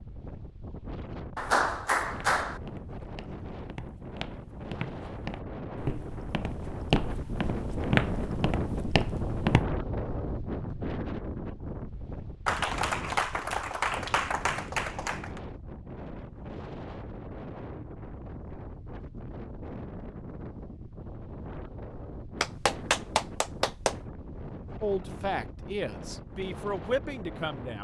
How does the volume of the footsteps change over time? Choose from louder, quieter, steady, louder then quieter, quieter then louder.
louder.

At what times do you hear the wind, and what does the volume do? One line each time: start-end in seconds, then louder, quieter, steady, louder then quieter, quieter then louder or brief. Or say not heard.
0.0-27.7 louder then quieter.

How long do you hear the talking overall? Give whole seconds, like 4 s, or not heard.
3 s.